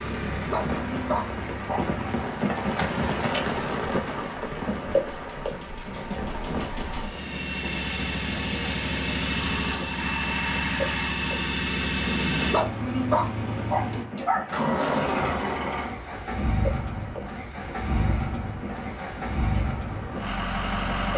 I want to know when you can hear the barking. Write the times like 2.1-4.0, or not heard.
0.0-1.9, 12.1-14.4.